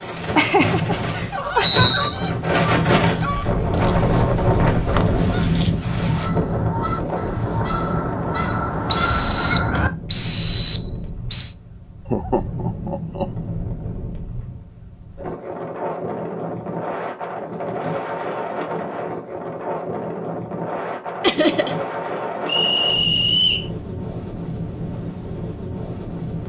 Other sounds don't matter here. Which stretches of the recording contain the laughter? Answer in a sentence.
You can hear the laughter from 0.3 to 1.9 s, from 12.1 to 13.2 s and from 21.2 to 21.8 s.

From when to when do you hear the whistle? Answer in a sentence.
You can hear the whistle from 0.6 to 2.1 s, from 8.9 to 11.6 s and from 22.4 to 23.6 s.